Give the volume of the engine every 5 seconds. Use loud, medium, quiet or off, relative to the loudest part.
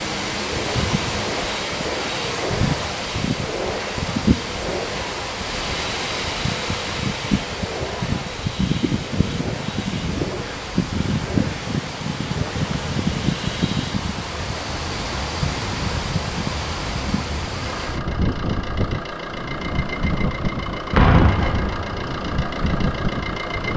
loud, loud, medium, loud, loud.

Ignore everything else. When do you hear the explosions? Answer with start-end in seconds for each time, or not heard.
20.9-22.1.